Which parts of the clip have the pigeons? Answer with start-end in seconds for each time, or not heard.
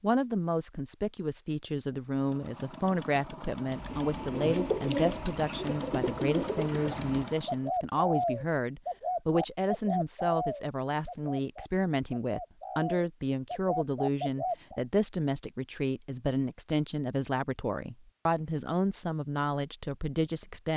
3.7-14.8.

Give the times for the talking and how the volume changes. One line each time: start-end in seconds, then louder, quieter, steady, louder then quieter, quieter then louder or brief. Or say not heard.
0.0-20.7 steady.